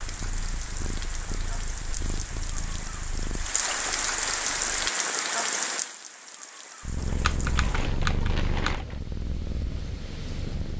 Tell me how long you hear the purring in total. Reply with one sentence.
You can hear the purring for 9 seconds altogether.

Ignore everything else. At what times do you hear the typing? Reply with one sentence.
The typing can be heard from 7.0 to 8.8 s.